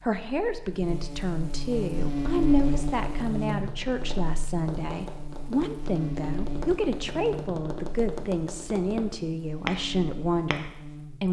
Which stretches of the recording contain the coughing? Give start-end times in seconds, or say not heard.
not heard.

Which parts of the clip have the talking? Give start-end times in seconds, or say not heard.
0.0-11.2.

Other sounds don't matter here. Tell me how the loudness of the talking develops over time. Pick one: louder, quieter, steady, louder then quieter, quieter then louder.
steady.